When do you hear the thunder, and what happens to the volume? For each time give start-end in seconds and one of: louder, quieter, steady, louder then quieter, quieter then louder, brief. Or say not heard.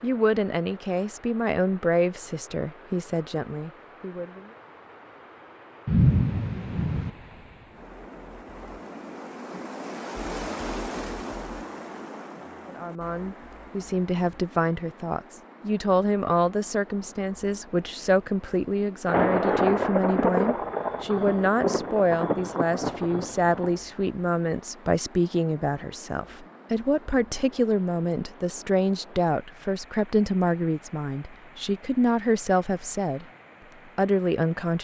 5.8-7.1 brief
19.1-23.8 quieter.